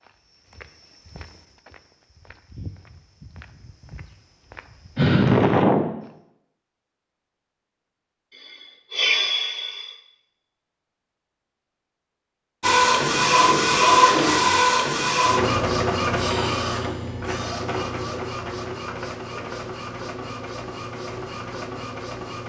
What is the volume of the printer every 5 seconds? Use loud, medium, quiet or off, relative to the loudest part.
off, off, loud, medium, quiet.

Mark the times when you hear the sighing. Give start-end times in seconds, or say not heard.
5.0-5.9, 8.9-9.9, 16.1-17.2.